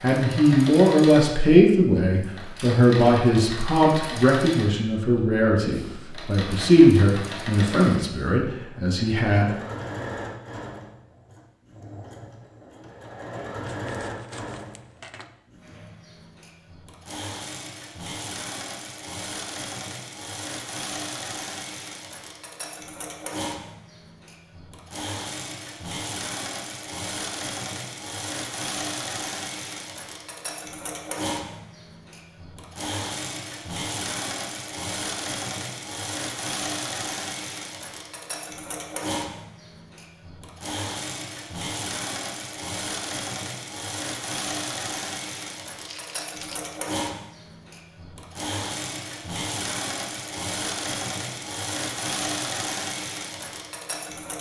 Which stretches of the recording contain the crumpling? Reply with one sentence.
The crumpling can be heard from 13.7 to 15.3 s and from 45.8 to 46.8 s.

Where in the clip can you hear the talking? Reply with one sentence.
The talking can be heard from 0.0 to 9.5 s.